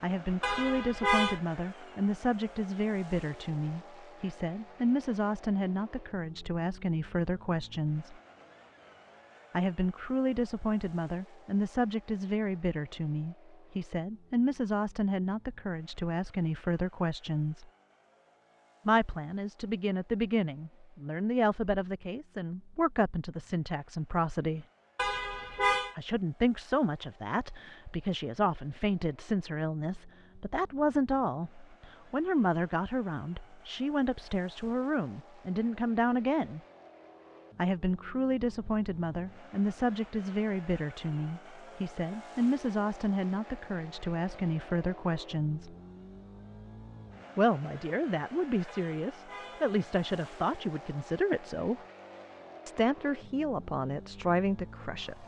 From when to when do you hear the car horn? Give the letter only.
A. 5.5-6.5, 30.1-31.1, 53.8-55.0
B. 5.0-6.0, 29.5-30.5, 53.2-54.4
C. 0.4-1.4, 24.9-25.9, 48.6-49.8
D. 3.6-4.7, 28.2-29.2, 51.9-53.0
C.